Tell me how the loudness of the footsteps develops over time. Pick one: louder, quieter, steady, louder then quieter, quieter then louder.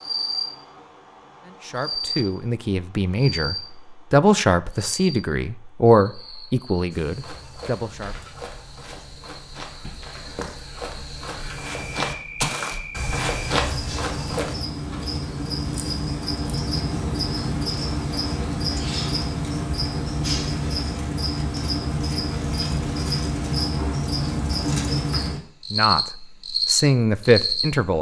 louder.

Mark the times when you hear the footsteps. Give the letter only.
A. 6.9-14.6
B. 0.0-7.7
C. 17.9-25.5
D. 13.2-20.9
A.